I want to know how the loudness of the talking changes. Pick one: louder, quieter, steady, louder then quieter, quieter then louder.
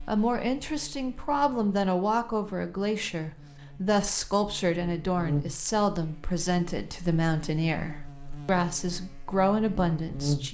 steady.